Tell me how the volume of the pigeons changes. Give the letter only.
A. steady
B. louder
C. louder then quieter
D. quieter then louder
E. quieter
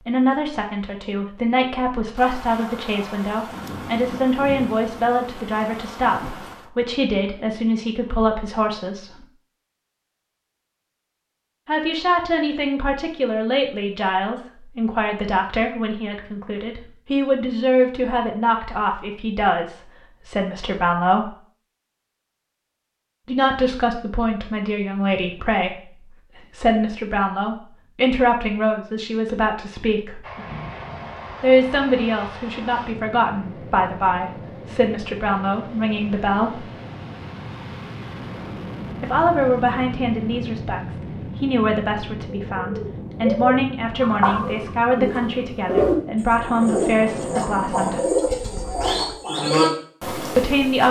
A.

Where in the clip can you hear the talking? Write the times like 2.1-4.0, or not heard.
0.1-9.2, 11.7-21.3, 23.2-30.2, 31.4-36.6, 39.0-48.0, 50.4-50.8.